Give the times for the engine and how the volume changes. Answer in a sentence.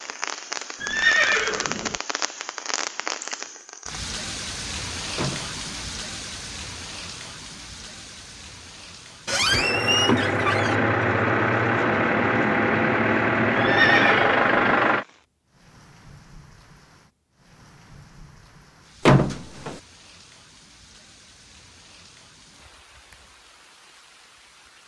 The engine can be heard from 9.4 to 15.1 s, at a steady volume.